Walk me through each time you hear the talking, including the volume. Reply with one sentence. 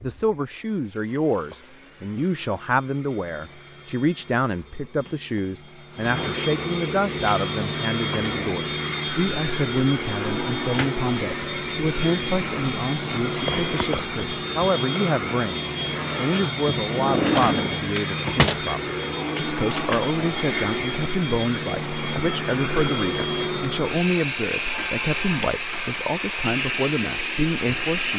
The talking can be heard from 0.0 to 28.1 s, at a steady volume.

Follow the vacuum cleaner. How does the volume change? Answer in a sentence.
The volume of the vacuum cleaner goes up.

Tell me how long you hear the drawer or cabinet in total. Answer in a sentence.
You can hear the drawer or cabinet for 2 seconds altogether.